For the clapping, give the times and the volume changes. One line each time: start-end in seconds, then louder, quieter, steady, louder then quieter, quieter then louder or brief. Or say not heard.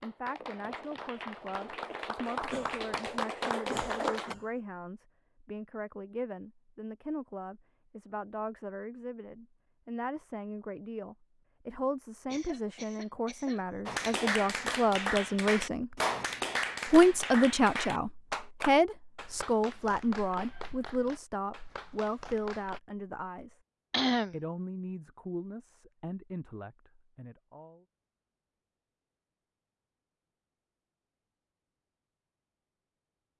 0.0-4.3 louder
13.8-22.8 quieter.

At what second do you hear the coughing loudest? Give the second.
24 s.